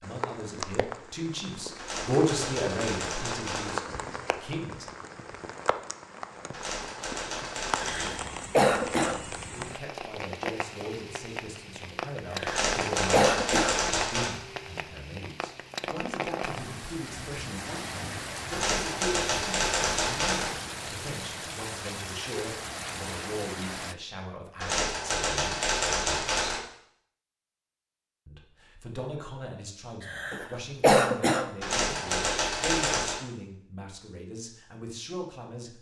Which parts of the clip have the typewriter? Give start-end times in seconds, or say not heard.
1.8-3.8, 6.5-8.3, 12.4-14.3, 18.5-20.5, 24.6-26.6, 31.6-33.2.